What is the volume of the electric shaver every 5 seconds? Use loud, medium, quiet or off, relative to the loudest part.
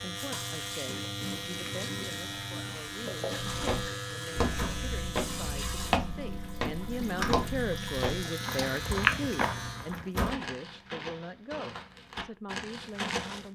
loud, loud, off.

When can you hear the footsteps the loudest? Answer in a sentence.
The loudest moment of the footsteps is at 9 seconds.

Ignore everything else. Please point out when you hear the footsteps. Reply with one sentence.
The footsteps can be heard from 3.4 to 13.4 s.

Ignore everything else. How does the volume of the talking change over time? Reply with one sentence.
The volume of the talking goes up, then down.